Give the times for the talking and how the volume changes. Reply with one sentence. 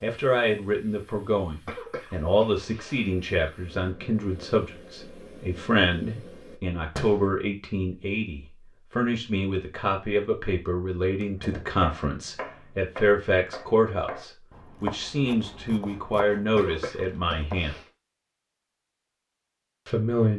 The talking can be heard from 0.0 to 17.8 s, at a steady volume; and briefly from 19.9 to 20.3 s.